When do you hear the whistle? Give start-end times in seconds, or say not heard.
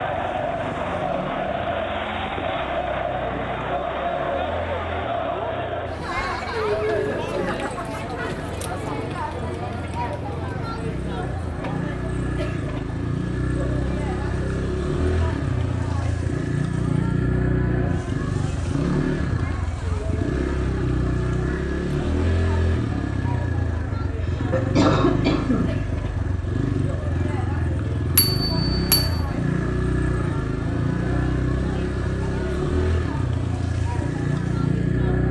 not heard.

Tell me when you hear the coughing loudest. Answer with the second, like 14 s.
25 s.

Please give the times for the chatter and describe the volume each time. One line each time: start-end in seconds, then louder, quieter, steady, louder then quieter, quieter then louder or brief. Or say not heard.
0.0-35.2 quieter.